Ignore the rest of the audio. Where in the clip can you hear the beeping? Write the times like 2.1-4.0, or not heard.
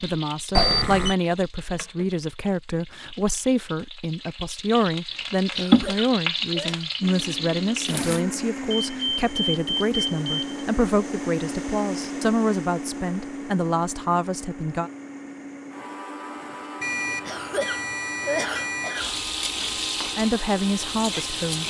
0.6-1.1, 8.7-10.7, 16.8-19.1.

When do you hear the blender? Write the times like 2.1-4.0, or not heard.
7.0-21.6.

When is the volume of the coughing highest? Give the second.
18 s.